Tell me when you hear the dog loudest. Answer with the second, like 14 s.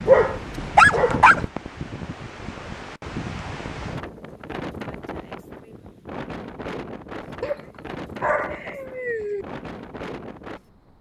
1 s.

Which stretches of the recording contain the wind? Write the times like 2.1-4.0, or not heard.
0.0-10.9.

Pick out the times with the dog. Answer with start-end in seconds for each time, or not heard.
0.1-1.4, 7.4-9.4.